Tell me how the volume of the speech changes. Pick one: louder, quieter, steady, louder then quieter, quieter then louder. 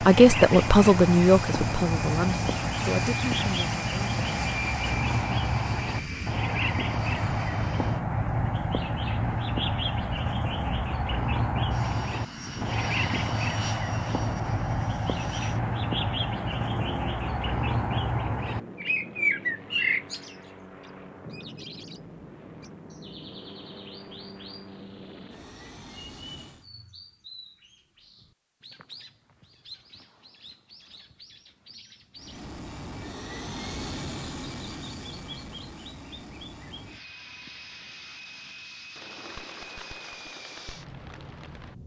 quieter.